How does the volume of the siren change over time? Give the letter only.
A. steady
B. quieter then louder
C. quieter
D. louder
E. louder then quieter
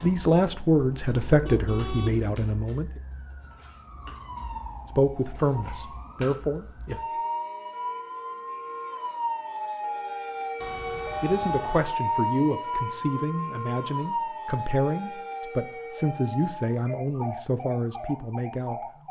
E.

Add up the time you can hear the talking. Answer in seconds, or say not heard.
13 s.